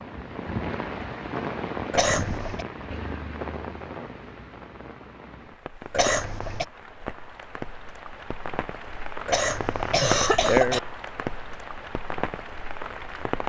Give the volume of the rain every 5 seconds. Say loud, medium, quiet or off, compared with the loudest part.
loud, medium, loud.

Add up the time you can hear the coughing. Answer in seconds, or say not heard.
3 s.